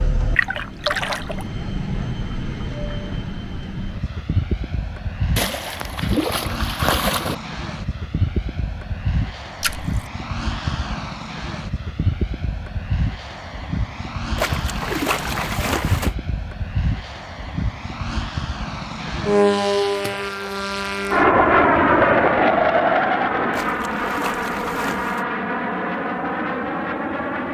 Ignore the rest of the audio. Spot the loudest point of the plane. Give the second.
22 s.